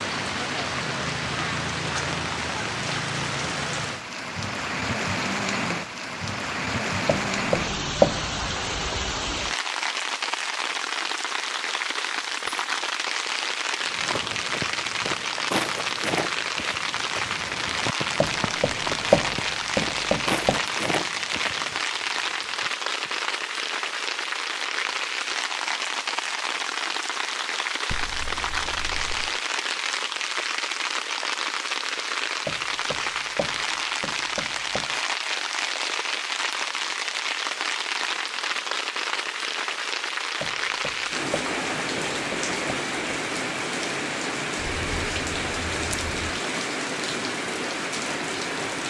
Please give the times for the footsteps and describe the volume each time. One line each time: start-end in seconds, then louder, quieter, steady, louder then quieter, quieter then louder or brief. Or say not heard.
13.8-23.3 quieter.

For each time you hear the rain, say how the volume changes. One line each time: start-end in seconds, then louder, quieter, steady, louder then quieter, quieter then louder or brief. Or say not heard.
0.0-48.8 steady.